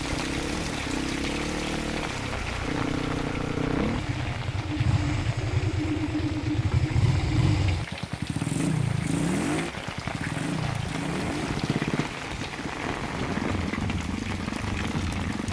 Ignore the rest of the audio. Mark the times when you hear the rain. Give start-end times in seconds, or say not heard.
0.0-15.4.